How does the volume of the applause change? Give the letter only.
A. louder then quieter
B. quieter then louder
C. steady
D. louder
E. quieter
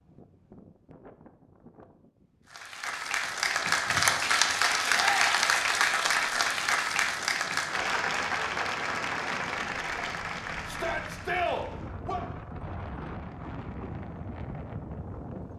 E.